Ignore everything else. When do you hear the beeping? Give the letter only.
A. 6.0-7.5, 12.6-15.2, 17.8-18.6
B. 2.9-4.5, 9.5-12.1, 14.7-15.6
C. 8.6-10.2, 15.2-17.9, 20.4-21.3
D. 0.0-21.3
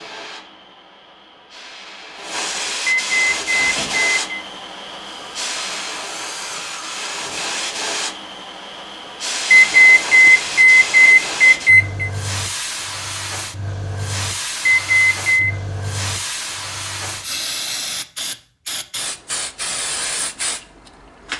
B.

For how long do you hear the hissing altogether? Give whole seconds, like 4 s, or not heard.
21 s.